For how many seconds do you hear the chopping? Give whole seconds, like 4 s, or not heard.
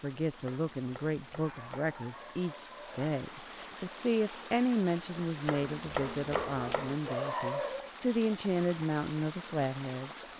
3 s.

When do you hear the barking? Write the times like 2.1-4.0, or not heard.
1.4-3.1, 6.3-7.9.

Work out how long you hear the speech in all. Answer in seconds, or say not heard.
10 s.